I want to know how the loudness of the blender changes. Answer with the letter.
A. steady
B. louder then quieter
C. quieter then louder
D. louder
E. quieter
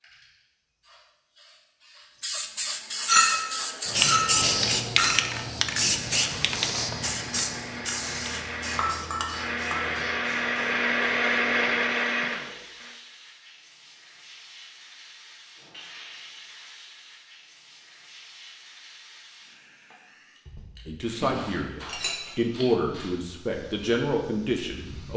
D.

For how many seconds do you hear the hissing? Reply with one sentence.
The hissing can be heard for 25 seconds in total.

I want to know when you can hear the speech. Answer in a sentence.
You can hear the speech from 20.9 to 25.1 s.